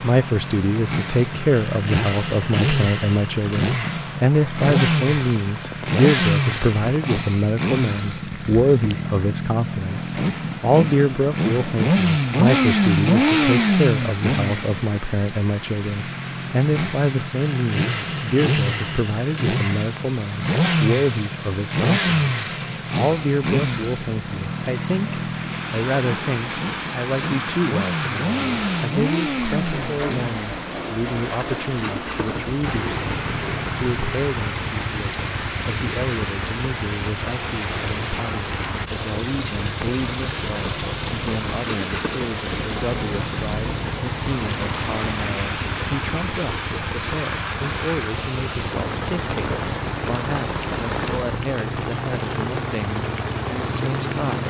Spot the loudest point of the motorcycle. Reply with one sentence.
The volume of the motorcycle peaks at 13 seconds.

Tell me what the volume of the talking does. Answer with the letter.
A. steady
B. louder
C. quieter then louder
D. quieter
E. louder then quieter
D.